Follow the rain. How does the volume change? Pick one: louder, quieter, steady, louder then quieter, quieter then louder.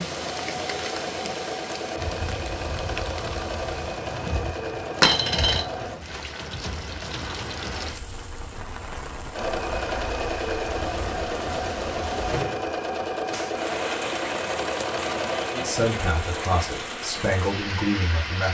steady.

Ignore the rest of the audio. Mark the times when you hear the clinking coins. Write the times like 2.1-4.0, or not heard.
5.0-5.7.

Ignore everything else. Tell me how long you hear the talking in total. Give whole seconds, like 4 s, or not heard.
3 s.